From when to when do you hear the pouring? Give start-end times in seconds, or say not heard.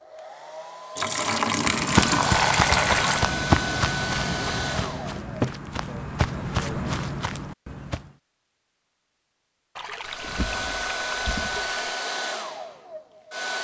0.9-3.2, 9.8-12.0.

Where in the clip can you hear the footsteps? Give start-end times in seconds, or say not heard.
1.6-8.2.